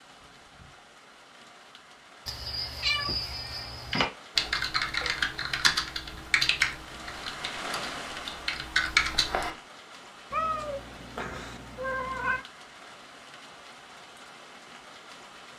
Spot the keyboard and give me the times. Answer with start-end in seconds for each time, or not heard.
3.9-9.5.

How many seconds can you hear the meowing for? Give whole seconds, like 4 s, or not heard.
4 s.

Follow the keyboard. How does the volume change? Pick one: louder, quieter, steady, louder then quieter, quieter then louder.
quieter then louder.